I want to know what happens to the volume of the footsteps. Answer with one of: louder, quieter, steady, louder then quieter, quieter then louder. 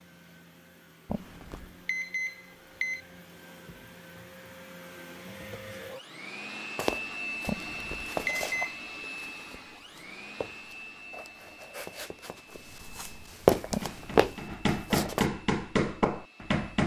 quieter then louder.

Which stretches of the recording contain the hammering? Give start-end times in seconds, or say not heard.
13.6-16.8.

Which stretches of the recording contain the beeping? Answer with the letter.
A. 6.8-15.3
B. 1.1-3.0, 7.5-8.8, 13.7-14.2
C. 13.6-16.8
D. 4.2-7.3
B.